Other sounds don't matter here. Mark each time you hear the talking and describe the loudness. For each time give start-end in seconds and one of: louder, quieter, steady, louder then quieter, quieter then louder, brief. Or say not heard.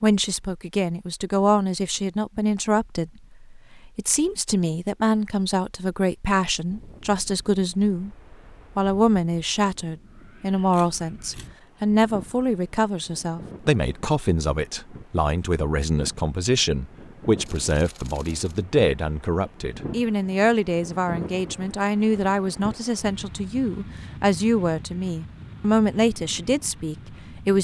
0.0-8.1 steady
8.8-27.5 steady.